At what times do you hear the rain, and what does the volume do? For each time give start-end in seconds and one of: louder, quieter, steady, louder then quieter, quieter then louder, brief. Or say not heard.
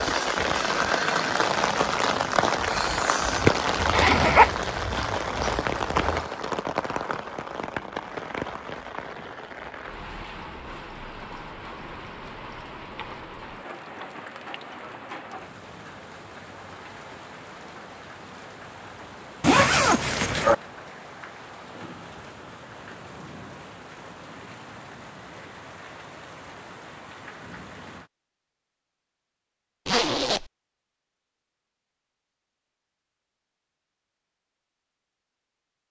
0.0-28.1 quieter.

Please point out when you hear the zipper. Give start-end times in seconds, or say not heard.
3.8-6.2, 19.4-20.6, 29.9-30.5.